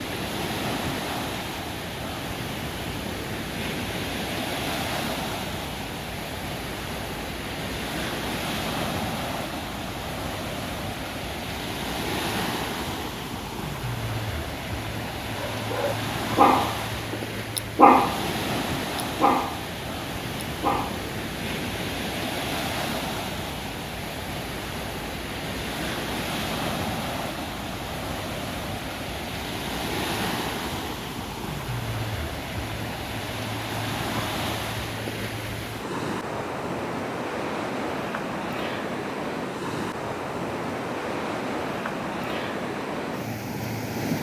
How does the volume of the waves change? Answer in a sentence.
The volume of the waves stays about the same.